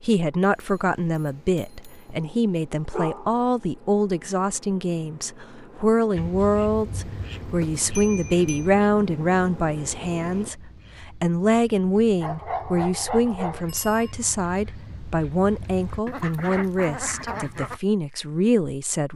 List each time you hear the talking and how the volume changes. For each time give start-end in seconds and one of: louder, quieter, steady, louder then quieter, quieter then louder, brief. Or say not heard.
0.0-19.1 steady.